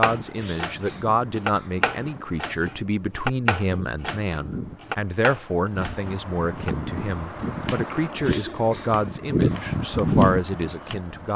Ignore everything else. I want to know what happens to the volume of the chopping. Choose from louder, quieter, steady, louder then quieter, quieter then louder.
quieter.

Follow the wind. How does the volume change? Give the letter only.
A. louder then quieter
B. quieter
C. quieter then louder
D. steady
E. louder
E.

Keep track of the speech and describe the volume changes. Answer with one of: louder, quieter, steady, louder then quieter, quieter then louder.
steady.